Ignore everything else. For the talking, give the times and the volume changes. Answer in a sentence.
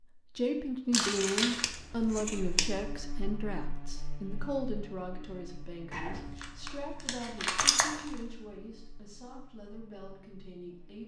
You can hear the talking from 0.1 to 11.0 s, getting quieter.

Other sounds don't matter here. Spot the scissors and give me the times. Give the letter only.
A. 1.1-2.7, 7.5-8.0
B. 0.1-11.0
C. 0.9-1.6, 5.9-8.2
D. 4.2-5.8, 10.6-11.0
A.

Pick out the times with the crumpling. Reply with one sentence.
You can hear the crumpling from 0.9 to 1.6 s and from 5.9 to 8.2 s.